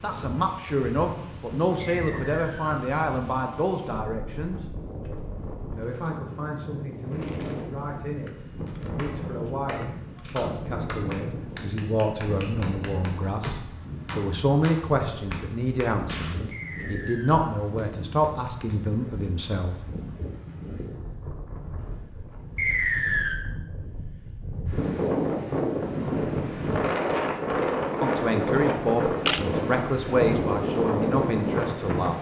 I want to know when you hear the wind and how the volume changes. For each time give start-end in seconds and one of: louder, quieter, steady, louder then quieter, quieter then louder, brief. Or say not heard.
0.0-32.1 louder.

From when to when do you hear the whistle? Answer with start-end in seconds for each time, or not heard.
2.0-2.7, 16.5-17.6, 22.6-23.4.